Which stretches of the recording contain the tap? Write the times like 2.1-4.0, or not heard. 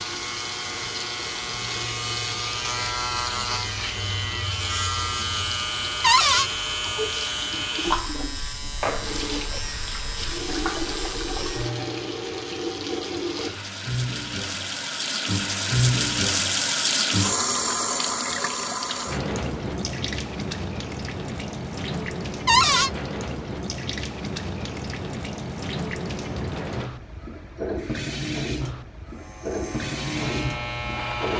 0.0-31.3.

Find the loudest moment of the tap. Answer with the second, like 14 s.
16 s.